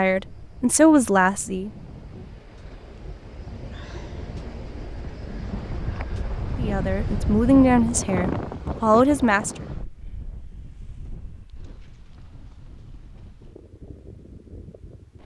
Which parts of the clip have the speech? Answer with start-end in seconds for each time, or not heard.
0.0-1.7, 6.5-9.7.